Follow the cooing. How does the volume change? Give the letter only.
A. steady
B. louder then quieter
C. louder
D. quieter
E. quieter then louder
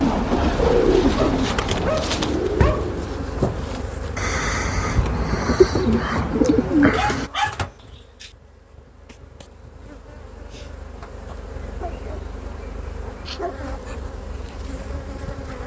E.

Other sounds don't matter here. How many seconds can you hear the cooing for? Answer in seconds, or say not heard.
7 s.